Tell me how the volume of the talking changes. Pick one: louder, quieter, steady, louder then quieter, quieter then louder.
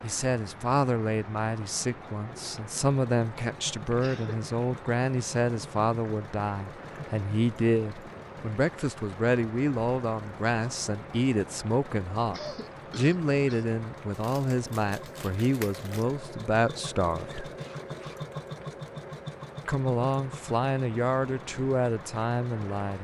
steady.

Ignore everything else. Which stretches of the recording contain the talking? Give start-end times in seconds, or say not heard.
0.0-17.5, 19.6-23.0.